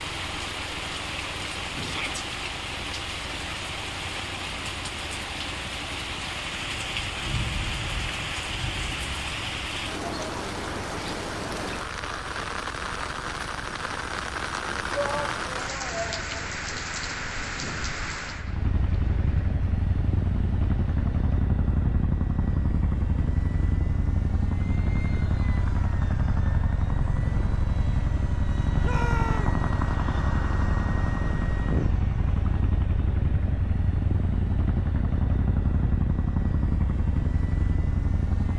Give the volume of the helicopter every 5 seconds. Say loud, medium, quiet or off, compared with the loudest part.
quiet, quiet, quiet, medium, loud, loud, loud, loud.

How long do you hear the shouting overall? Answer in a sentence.
You can hear the shouting for 3 seconds altogether.